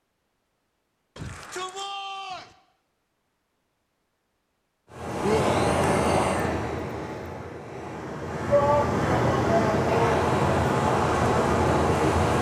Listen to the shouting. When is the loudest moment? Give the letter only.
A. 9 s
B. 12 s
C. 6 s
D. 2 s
A.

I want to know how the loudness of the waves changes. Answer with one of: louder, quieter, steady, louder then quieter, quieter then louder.
quieter then louder.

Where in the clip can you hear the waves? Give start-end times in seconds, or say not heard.
4.9-12.3.